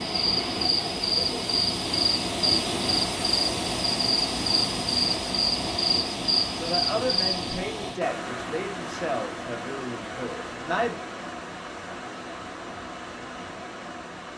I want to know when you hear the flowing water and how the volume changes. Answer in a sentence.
The flowing water can be heard from 0.0 to 14.3 s, getting quieter.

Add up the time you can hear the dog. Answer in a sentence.
You can't hear the dog here.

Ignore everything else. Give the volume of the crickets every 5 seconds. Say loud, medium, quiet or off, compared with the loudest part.
loud, loud, off.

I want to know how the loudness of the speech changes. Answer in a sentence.
The loudness of the speech goes down.